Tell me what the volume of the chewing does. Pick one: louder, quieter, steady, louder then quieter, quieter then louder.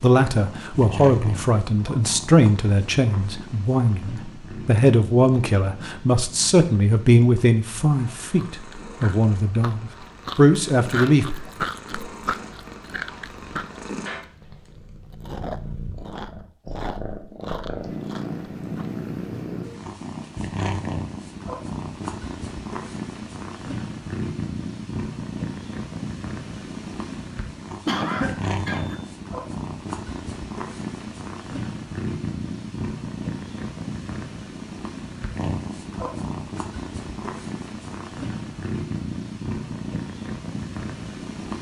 louder then quieter.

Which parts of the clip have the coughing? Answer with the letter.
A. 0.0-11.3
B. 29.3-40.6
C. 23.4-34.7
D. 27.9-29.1
D.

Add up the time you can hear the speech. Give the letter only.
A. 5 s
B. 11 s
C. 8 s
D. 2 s
B.